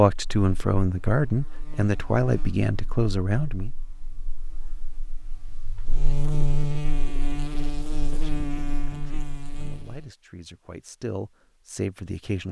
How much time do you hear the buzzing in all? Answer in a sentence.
The buzzing can be heard for 10 seconds in total.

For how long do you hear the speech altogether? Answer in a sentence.
You can hear the speech for 8 seconds altogether.